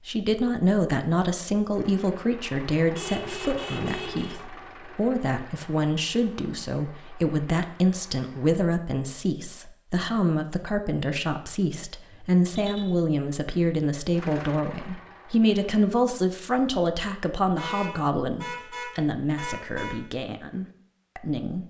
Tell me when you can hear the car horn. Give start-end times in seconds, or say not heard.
2.9-4.3, 12.1-12.9, 17.6-19.9.